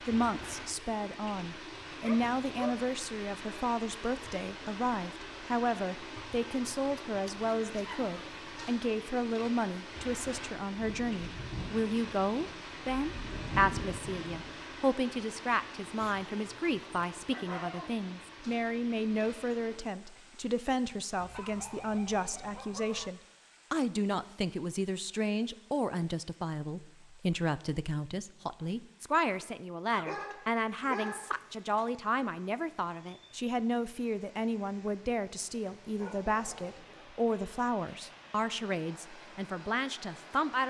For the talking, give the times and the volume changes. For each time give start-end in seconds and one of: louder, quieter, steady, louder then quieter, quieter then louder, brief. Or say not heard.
0.1-40.6 steady.